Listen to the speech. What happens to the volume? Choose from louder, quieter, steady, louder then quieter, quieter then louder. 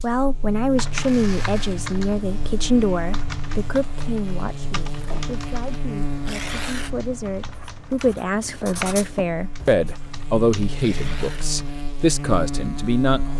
quieter then louder.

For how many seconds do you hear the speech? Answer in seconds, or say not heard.
13 s.